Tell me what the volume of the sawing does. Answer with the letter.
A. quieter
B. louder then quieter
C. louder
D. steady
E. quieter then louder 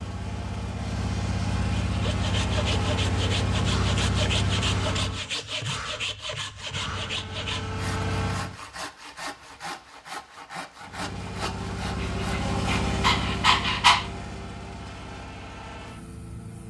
A.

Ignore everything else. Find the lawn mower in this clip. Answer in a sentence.
You can hear the lawn mower from 0.0 to 5.3 s, from 6.6 to 8.6 s and from 10.8 to 16.6 s.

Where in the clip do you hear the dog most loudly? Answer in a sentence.
The volume of the dog peaks at 14 seconds.